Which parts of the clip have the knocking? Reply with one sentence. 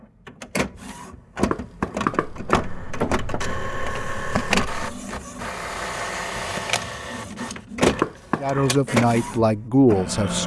You can hear the knocking from 1.5 to 3.4 s and from 8.0 to 8.6 s.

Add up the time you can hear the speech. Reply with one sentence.
You can hear the speech for 2 seconds altogether.